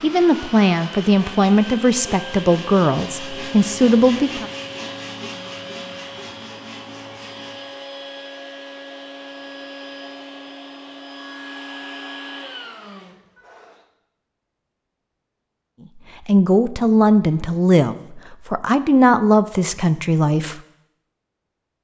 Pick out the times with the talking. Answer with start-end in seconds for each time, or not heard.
0.0-4.5, 16.2-20.6.